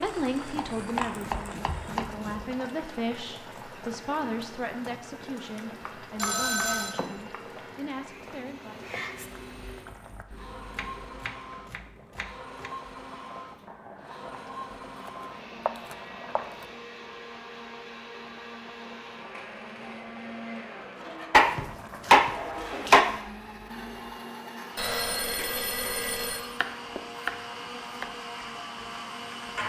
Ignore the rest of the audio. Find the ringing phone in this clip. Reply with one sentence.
You can hear the ringing phone from 6.2 to 7.0 s and from 24.8 to 26.4 s.